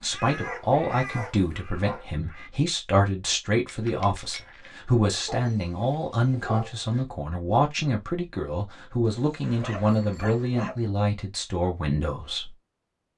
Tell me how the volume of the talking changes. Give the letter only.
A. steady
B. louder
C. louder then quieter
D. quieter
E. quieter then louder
A.